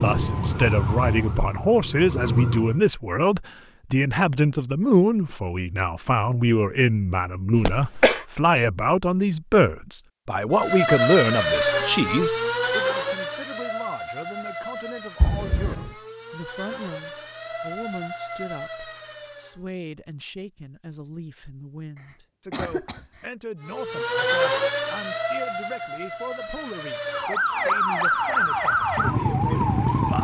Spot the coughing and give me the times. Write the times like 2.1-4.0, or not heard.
7.5-8.2, 15.2-15.9, 22.5-23.2.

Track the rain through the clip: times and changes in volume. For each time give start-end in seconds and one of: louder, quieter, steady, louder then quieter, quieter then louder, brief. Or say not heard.
not heard.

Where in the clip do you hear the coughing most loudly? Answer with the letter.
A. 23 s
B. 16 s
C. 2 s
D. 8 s
D.